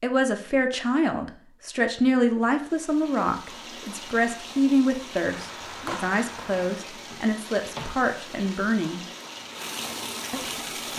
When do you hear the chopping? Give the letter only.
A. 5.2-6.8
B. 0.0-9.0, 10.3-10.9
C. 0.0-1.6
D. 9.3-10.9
A.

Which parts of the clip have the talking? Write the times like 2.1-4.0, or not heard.
0.0-9.0, 10.3-10.9.